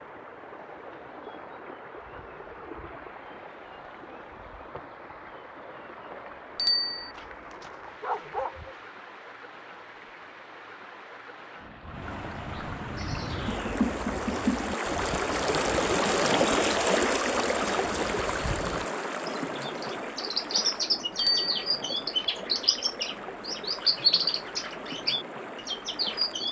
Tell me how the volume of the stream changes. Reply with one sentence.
The volume of the stream goes up, then down.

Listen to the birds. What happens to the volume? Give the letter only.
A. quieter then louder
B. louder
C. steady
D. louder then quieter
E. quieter
A.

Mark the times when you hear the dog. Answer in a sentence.
You can hear the dog from 7.1 to 8.8 s.